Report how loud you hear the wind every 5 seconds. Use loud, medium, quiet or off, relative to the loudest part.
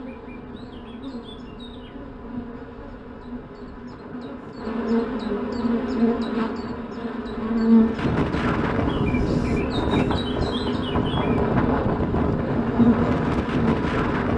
quiet, loud, loud.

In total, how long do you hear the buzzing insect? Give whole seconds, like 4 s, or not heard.
14 s.